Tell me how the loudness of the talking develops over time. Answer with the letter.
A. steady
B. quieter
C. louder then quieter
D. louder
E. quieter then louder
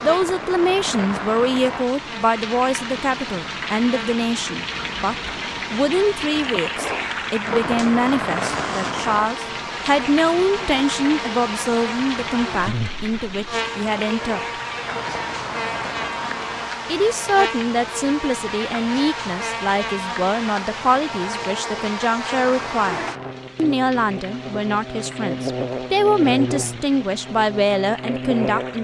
A.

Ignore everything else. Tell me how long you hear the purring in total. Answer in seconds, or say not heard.
not heard.